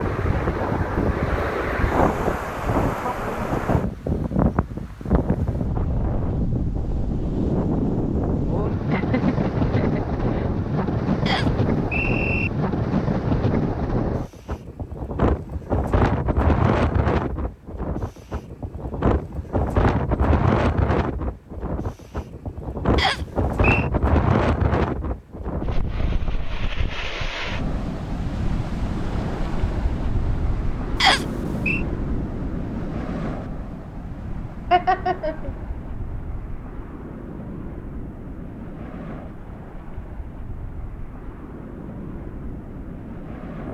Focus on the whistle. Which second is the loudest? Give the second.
31 s.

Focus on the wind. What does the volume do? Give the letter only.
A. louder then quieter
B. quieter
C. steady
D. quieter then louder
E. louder
B.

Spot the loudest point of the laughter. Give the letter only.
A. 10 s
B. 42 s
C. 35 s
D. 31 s
C.